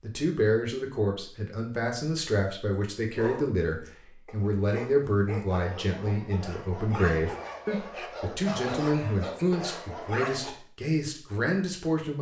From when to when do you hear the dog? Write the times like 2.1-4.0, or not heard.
3.0-10.6.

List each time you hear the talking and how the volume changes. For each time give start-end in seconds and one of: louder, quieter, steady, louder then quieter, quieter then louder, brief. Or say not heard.
0.0-12.1 steady.